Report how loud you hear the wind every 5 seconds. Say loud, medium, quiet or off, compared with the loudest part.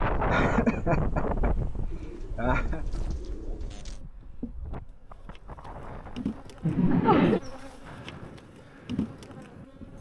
loud, quiet.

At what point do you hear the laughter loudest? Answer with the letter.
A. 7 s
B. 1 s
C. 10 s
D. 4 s
A.